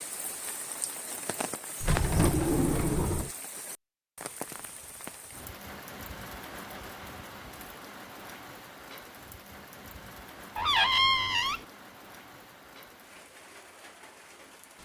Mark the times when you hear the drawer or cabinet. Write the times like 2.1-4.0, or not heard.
1.8-3.3, 10.6-11.7.